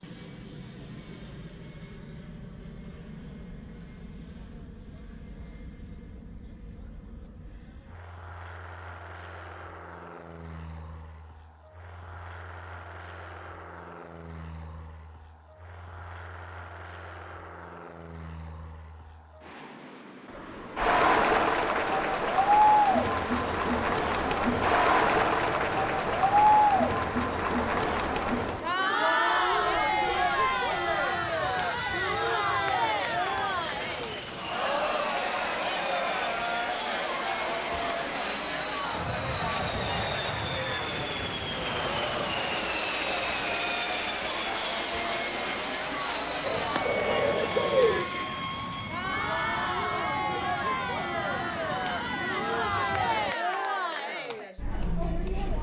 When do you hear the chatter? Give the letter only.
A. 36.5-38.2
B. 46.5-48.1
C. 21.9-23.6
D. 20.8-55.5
D.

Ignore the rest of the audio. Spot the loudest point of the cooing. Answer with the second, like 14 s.
48 s.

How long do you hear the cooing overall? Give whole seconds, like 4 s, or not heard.
2 s.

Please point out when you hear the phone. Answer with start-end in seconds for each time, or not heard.
not heard.